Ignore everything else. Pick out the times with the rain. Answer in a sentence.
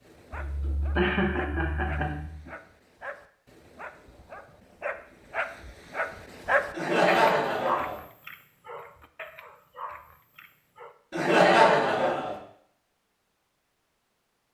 The rain can't be heard in this clip.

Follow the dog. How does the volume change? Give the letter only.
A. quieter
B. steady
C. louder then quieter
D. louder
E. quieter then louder
C.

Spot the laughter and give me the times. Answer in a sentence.
You can hear the laughter from 0.3 to 2.5 s, from 6.7 to 8.0 s and from 11.1 to 12.3 s.